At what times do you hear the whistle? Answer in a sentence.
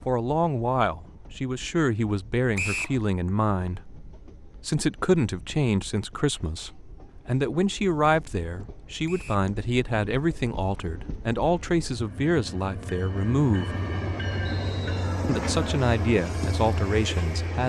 The whistle can be heard from 2.5 to 3.0 s, from 9.1 to 9.5 s and from 14.4 to 15.1 s.